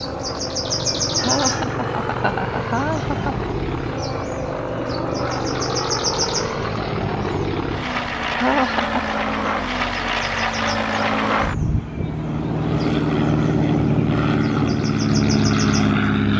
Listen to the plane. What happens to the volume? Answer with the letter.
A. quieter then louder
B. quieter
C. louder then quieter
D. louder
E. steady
D.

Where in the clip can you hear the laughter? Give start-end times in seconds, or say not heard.
1.1-3.4, 8.3-9.1.